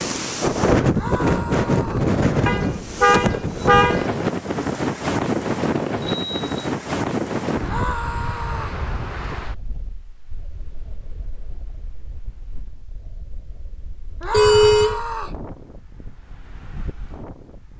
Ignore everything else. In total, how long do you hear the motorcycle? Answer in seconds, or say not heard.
not heard.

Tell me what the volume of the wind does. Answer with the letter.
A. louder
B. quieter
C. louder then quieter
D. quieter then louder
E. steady
D.